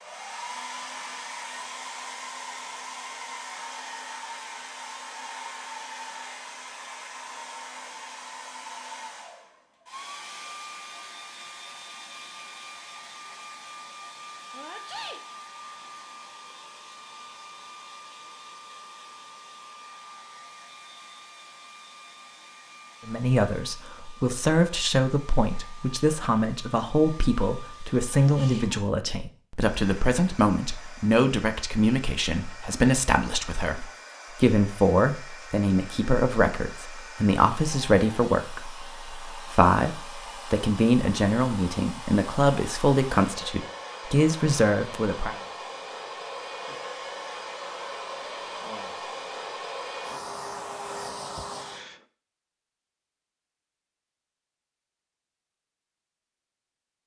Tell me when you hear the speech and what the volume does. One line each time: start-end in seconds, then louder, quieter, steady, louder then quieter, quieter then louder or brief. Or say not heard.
23.1-45.4 steady.